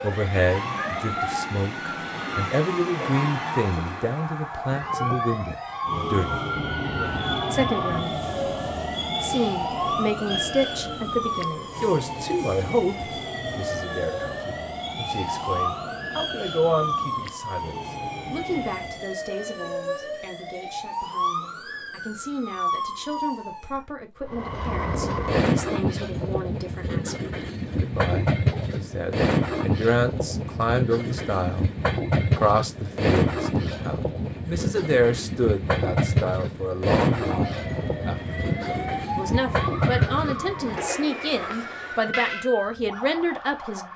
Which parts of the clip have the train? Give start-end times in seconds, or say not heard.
0.0-19.1, 24.2-42.5.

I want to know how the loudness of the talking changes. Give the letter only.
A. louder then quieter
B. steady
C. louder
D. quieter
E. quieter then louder
E.